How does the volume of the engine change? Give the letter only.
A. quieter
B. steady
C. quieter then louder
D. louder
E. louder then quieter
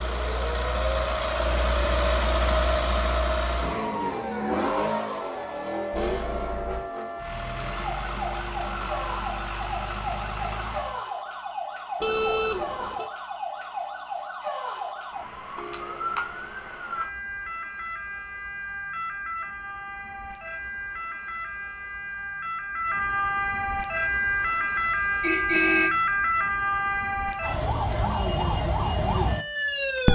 A.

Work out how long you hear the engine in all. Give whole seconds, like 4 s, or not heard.
11 s.